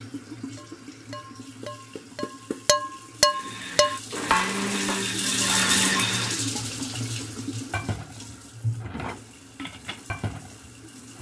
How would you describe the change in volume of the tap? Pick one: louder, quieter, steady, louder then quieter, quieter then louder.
louder then quieter.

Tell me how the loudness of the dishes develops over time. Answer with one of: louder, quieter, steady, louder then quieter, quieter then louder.
louder then quieter.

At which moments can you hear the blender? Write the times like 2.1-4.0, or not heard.
3.2-6.5.